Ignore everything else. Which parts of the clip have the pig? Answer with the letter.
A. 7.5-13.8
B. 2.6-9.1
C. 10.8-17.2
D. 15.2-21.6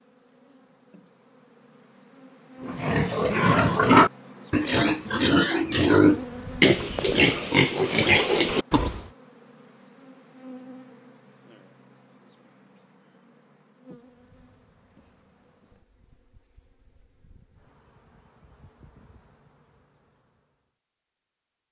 B.